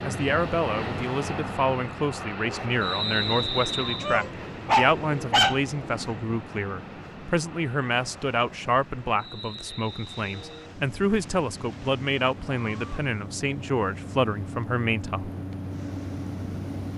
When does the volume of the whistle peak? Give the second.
3 s.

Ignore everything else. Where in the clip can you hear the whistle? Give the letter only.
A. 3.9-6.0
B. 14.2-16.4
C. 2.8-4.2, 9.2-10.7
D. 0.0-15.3
C.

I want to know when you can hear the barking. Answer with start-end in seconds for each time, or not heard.
3.9-6.0.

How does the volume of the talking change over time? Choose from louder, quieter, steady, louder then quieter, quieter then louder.
steady.